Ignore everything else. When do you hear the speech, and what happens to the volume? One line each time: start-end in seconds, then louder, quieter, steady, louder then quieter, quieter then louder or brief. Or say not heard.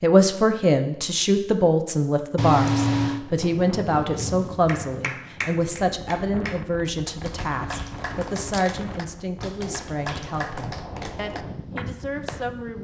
0.0-12.8 quieter.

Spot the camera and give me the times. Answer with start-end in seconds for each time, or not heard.
2.4-3.2, 7.7-8.7.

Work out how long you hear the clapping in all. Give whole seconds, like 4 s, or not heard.
8 s.